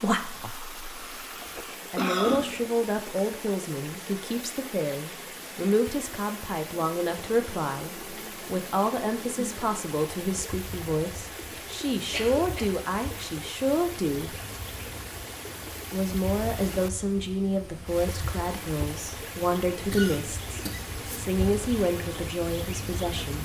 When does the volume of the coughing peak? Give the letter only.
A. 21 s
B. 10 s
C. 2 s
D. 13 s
C.